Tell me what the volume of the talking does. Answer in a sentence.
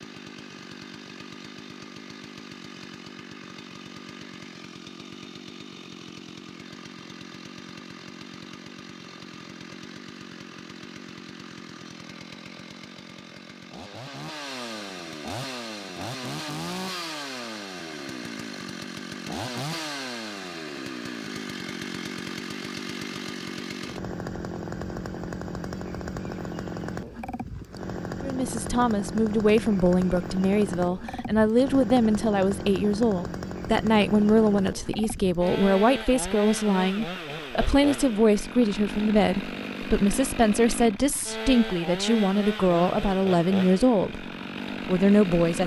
The loudness of the talking stays about the same.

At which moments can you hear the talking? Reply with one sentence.
You can hear the talking from 28.2 to 45.6 s.